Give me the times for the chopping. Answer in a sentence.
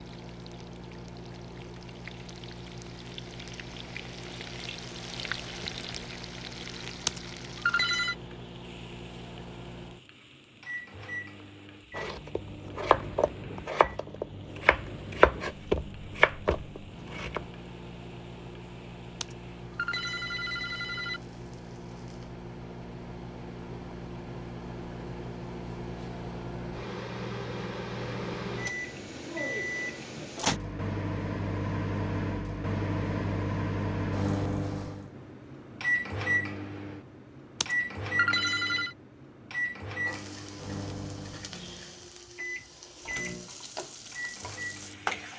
The chopping can be heard from 11.9 to 17.4 s.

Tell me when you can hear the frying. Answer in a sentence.
You can hear the frying from 0.0 to 22.4 s and from 40.0 to 45.3 s.